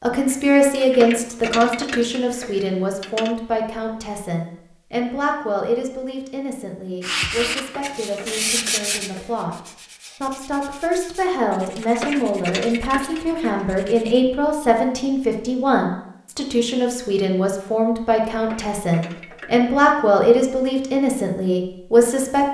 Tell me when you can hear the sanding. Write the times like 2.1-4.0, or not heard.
7.0-14.2.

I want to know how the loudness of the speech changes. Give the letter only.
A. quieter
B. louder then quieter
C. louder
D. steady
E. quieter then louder
E.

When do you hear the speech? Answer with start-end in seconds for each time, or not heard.
0.0-22.4.